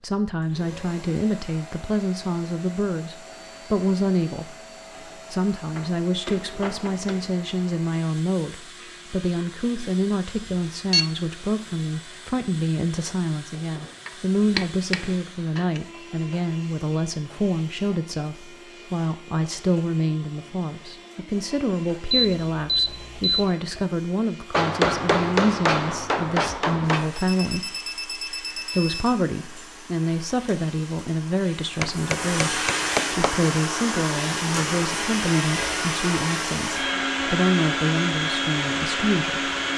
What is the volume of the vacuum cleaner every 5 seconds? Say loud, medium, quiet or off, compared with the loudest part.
quiet, quiet, quiet, quiet, quiet, quiet, loud, loud.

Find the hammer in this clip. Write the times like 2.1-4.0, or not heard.
5.8-7.4, 14.1-15.8, 24.5-27.2, 31.8-33.4.